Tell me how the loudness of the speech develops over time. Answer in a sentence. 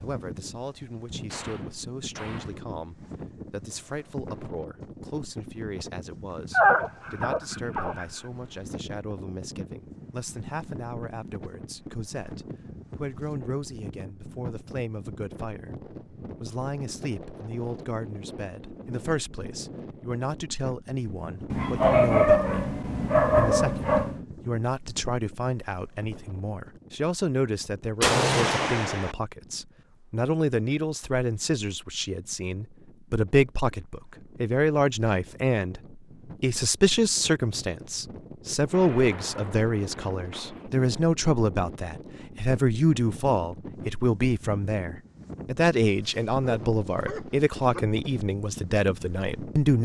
The volume of the speech goes up.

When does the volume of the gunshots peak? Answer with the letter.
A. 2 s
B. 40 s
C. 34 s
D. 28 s
D.